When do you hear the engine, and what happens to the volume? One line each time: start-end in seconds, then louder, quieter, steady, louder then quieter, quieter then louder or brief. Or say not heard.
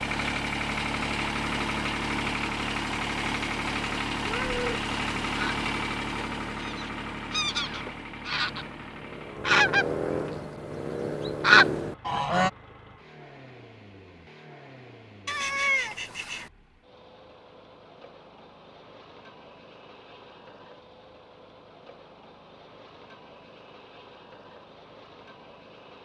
0.0-26.0 quieter.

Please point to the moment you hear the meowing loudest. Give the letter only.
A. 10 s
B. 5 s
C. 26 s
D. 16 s
D.